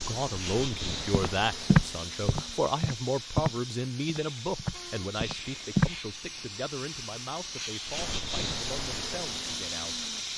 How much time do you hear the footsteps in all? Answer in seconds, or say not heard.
5 s.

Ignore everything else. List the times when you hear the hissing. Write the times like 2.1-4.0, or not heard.
0.0-10.3.